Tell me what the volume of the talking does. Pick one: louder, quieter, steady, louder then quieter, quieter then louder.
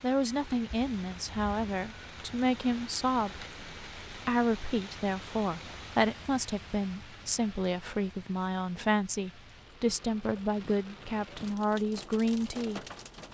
steady.